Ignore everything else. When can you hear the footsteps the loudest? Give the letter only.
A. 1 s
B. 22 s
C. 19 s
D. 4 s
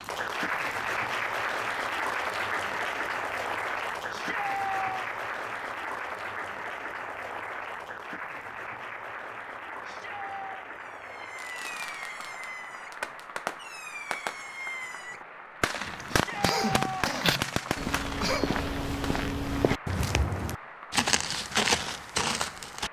B.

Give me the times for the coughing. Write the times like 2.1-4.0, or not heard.
16.0-18.4.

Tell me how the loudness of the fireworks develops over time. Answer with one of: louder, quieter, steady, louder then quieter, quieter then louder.
louder.